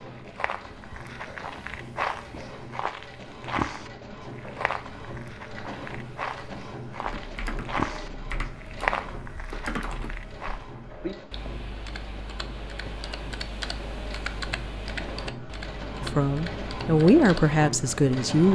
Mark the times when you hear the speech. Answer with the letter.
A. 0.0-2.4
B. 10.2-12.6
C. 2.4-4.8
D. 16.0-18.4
D.